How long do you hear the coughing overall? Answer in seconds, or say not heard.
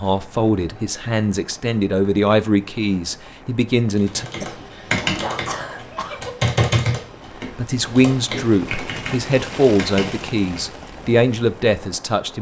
2 s.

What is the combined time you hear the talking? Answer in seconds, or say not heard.
9 s.